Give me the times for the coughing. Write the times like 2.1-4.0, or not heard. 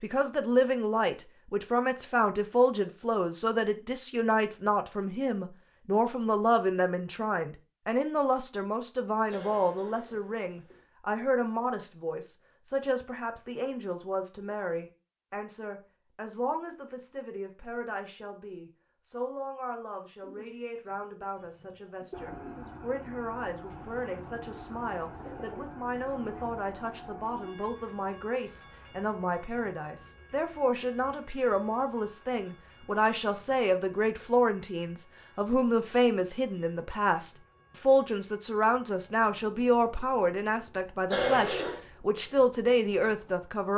9.2-10.8, 41.0-41.8.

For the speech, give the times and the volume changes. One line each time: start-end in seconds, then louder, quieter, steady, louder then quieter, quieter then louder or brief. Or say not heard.
0.0-43.7 quieter then louder.